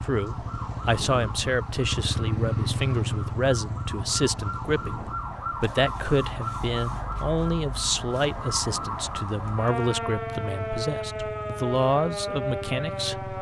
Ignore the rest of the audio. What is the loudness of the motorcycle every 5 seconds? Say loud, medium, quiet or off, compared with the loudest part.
loud, medium, medium.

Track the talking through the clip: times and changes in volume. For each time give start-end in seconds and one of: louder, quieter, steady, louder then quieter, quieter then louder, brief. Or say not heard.
0.0-13.3 steady.